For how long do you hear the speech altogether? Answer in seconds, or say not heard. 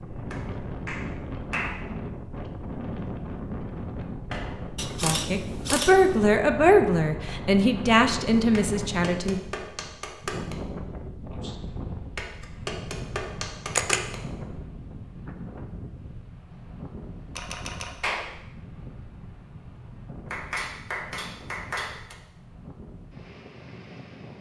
4 s.